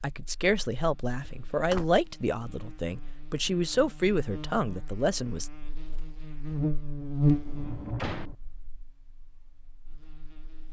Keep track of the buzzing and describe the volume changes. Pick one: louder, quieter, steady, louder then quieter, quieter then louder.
louder then quieter.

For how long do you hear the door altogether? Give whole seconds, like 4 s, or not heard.
2 s.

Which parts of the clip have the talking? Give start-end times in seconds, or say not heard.
0.0-5.5.